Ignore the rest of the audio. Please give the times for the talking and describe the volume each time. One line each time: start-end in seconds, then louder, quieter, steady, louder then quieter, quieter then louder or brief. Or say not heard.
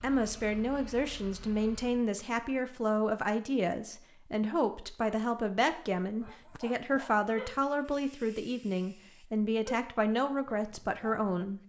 0.0-11.6 steady.